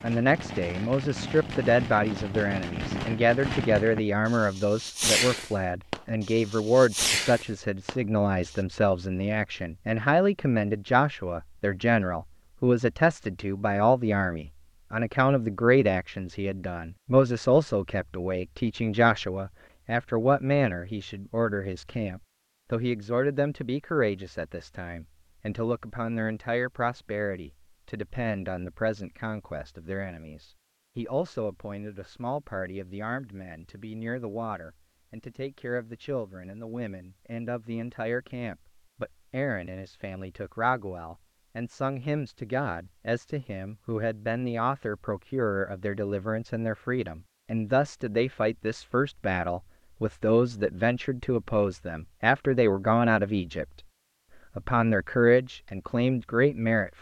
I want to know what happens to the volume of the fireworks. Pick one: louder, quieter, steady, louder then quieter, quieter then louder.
louder.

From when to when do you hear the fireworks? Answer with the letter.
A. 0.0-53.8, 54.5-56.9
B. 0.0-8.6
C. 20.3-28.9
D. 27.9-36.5
B.